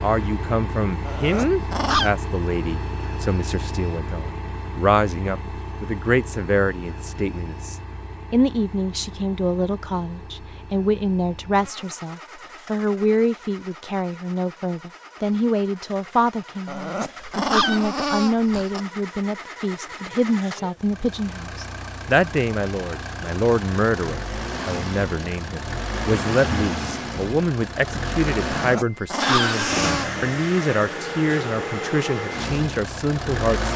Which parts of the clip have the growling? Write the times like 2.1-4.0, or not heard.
1.1-2.1, 16.6-18.8, 28.6-30.1.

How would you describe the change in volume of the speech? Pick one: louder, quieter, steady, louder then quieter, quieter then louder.
steady.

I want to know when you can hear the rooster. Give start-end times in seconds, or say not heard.
not heard.